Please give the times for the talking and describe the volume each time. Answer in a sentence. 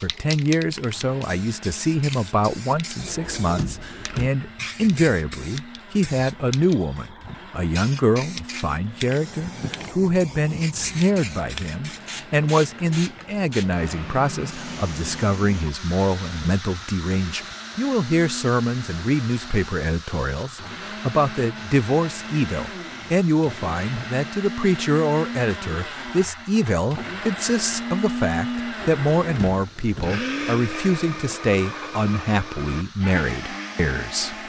You can hear the talking from 0.0 to 34.4 s, at a steady volume.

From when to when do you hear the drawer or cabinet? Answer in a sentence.
You can hear the drawer or cabinet from 3.0 to 4.3 s and from 28.8 to 30.1 s.